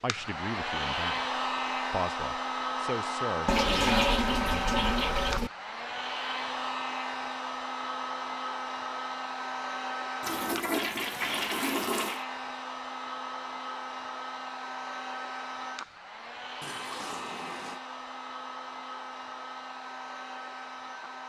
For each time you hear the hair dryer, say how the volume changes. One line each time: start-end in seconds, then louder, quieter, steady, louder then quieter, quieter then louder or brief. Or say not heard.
0.0-21.2 quieter.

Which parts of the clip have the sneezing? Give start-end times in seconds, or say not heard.
not heard.